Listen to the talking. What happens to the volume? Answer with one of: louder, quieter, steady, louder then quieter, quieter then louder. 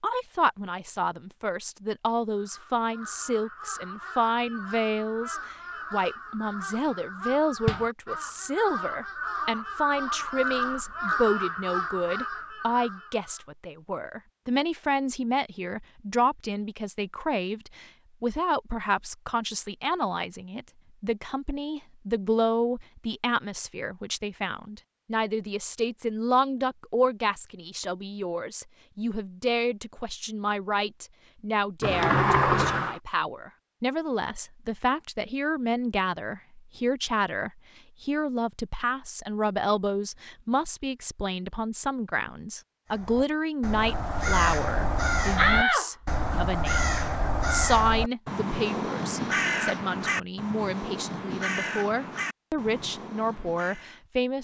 steady.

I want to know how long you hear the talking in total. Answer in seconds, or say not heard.
54 s.